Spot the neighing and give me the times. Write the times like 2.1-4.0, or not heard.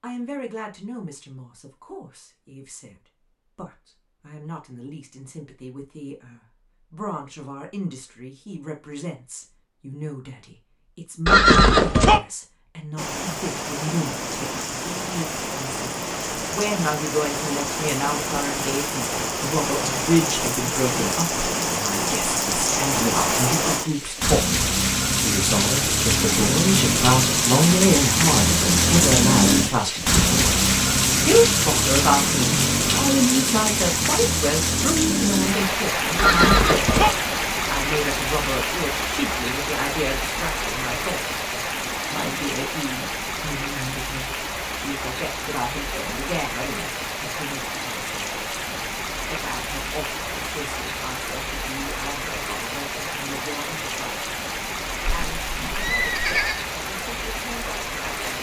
11.2-12.2, 36.1-37.1, 55.0-56.6.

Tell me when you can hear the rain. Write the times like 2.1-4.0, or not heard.
12.9-58.3.